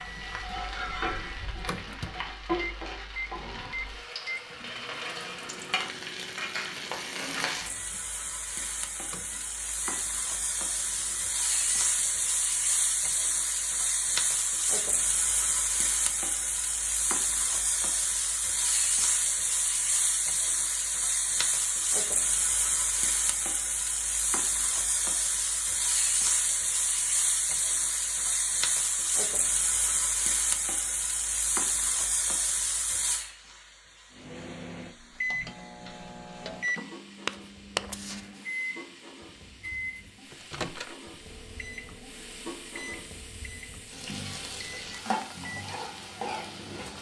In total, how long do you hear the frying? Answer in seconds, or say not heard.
47 s.